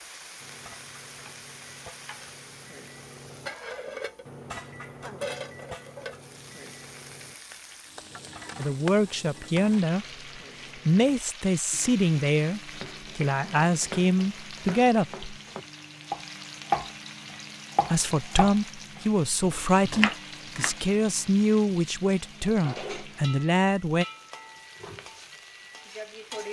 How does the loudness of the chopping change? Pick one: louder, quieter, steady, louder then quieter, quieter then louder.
louder.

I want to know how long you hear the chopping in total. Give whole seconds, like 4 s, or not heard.
7 s.